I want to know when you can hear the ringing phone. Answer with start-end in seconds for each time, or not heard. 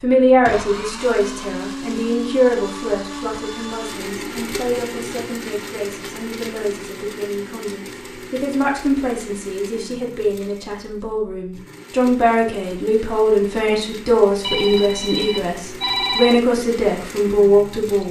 14.4-16.4.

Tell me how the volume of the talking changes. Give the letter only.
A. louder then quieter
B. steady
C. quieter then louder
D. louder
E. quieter
C.